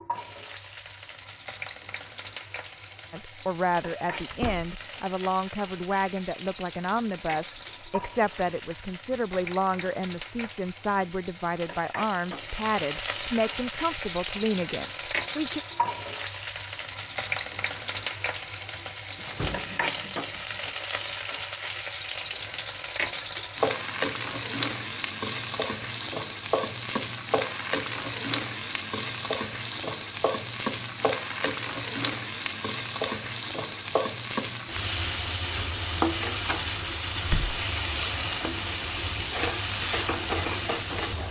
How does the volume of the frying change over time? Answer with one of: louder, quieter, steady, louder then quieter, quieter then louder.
louder.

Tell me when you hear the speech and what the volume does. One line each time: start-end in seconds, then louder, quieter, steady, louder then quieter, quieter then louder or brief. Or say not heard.
3.1-15.6 steady.